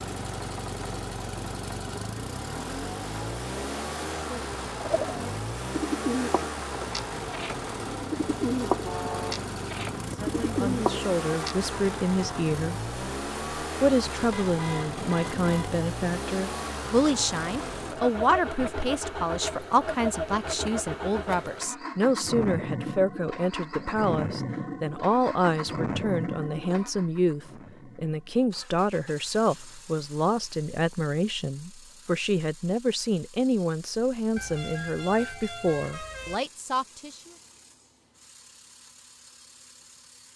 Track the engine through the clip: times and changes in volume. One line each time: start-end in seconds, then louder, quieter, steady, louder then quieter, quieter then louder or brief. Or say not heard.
0.0-40.3 quieter.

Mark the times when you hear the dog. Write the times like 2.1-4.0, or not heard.
not heard.